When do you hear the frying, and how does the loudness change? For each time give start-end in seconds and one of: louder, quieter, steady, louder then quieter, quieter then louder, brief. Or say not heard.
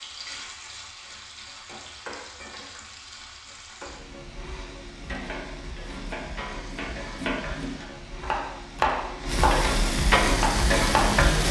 0.0-11.4 louder.